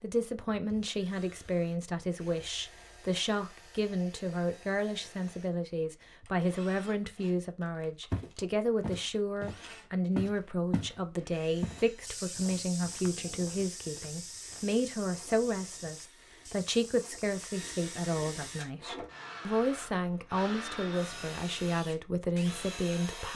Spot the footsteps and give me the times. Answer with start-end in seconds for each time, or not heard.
8.1-18.7.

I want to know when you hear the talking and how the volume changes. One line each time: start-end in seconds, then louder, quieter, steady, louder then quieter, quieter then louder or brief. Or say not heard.
0.0-23.3 steady.